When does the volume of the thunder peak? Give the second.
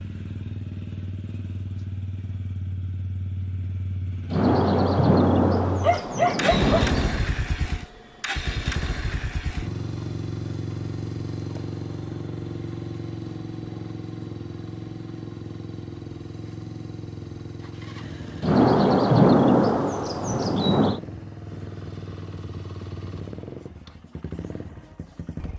19 s.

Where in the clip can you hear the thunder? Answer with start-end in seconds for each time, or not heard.
4.3-7.2, 18.4-21.0.